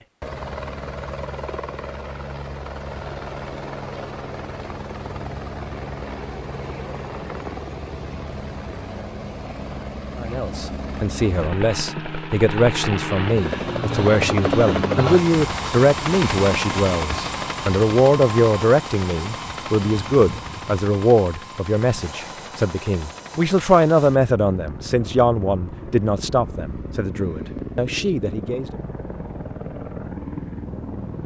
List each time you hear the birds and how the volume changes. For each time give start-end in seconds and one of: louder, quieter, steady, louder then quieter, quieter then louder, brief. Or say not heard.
not heard.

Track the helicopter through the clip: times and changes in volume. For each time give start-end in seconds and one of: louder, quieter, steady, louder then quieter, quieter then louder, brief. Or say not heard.
0.0-31.2 louder then quieter.